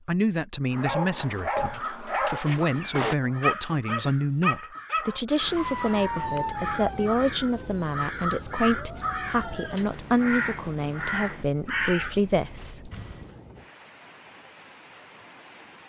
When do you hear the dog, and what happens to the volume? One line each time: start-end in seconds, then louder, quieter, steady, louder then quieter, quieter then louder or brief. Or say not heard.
0.7-9.9 quieter.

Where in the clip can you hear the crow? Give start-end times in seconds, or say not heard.
1.6-13.3.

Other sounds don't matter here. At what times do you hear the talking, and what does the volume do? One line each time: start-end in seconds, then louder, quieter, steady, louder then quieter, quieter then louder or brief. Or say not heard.
0.1-12.9 steady.